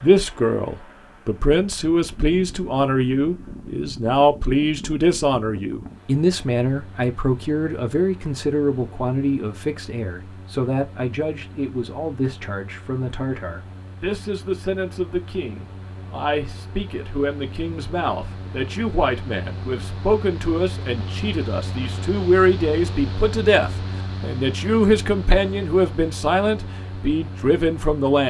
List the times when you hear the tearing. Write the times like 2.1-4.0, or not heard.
not heard.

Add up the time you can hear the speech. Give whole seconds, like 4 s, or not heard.
28 s.